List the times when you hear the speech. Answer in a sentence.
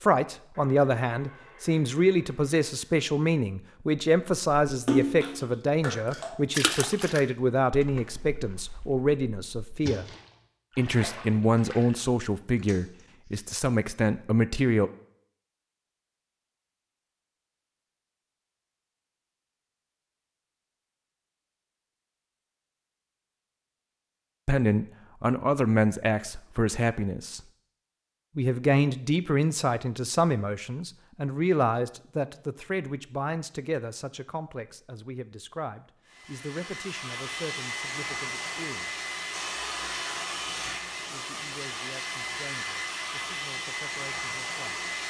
The speech can be heard from 0.0 to 10.1 s, from 10.8 to 14.9 s, from 24.4 to 27.4 s, from 28.4 to 39.0 s and from 41.0 to 44.8 s.